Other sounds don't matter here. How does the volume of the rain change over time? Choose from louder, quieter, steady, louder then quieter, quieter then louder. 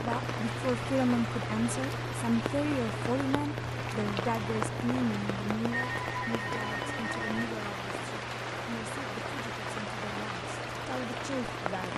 steady.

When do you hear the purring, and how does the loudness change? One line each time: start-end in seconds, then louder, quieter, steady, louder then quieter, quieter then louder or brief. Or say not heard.
0.0-11.9 quieter.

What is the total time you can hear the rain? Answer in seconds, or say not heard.
12 s.